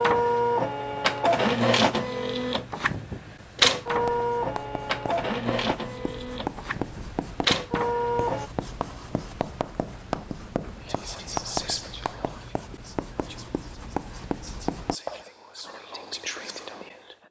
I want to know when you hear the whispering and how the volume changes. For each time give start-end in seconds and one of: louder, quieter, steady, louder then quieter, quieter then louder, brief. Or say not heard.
10.8-17.1 quieter then louder.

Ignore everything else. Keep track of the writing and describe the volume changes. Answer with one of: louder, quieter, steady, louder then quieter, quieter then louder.
louder.